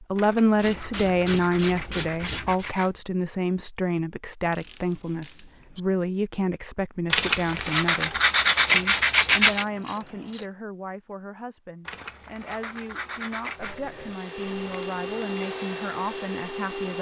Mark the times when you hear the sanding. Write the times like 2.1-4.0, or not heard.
0.1-2.9, 7.1-9.7, 11.8-13.8.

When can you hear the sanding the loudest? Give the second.
9 s.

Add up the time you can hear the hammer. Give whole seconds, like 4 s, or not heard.
not heard.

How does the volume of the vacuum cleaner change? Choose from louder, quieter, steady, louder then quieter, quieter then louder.
louder.